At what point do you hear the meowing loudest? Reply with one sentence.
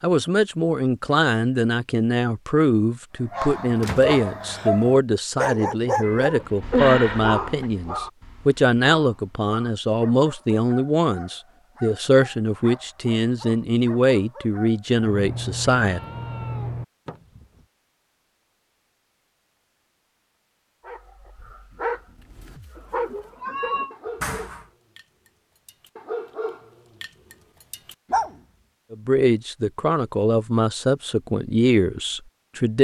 The loudest moment of the meowing is at 7 seconds.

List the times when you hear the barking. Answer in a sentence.
The barking can be heard from 3.3 to 14.9 s and from 20.9 to 28.4 s.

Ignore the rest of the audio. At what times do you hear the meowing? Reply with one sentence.
You can hear the meowing from 6.0 to 7.7 s, from 15.0 to 16.9 s and from 22.8 to 23.9 s.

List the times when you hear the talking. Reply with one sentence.
You can hear the talking from 0.0 to 16.0 s and from 28.9 to 32.7 s.